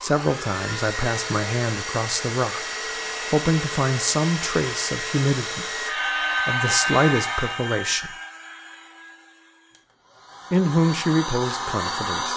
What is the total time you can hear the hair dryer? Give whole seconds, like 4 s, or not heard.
12 s.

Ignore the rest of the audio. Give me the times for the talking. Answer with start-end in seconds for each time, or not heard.
0.0-5.8, 6.5-8.1, 10.5-12.3.